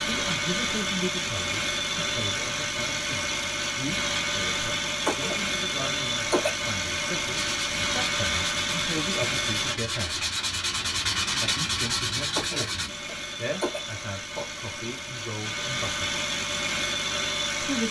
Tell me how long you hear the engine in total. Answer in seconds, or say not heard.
15 s.